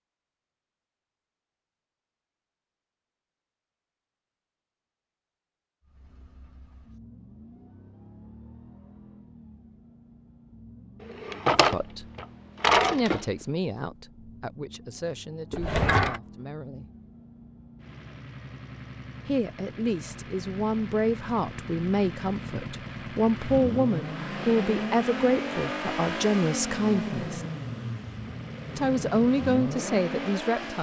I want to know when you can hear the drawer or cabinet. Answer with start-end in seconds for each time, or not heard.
11.1-13.2, 15.5-16.2.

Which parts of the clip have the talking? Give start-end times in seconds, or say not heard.
11.5-12.1, 12.8-16.9, 19.2-27.4, 28.8-30.7.